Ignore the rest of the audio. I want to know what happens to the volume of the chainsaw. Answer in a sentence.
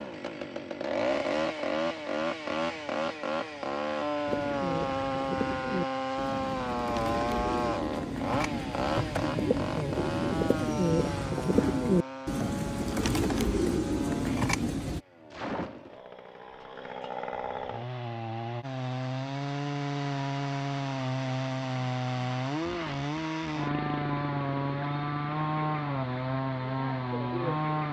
The volume of the chainsaw goes down, then up.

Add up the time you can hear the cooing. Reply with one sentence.
You can hear the cooing for 11 seconds altogether.